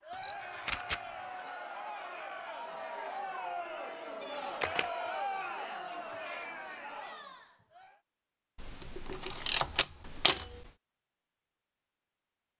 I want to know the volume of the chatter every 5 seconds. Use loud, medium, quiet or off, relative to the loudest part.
loud, loud, off.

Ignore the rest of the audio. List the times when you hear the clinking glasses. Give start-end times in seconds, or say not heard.
not heard.